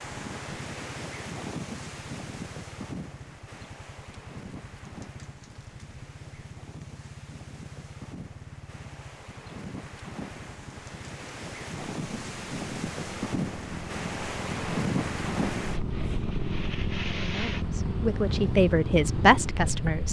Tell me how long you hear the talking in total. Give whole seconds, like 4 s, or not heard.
3 s.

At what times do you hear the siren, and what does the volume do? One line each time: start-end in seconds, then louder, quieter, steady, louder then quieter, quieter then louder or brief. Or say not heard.
not heard.